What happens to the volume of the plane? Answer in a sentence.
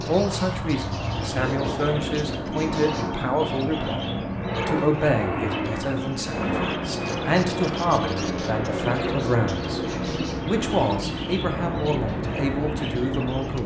The volume of the plane stays about the same.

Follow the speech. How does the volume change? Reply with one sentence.
The volume of the speech stays about the same.